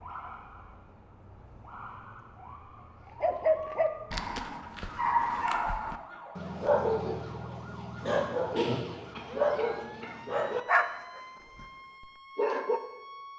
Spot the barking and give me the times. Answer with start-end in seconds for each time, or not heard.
3.2-12.8.